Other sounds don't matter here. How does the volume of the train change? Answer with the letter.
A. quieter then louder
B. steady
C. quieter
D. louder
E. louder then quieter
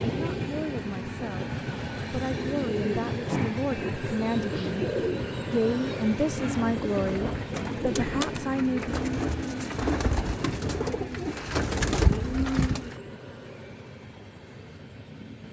C.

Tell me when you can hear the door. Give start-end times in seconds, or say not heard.
7.8-8.5.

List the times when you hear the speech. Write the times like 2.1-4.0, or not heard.
0.0-4.8, 5.5-8.9.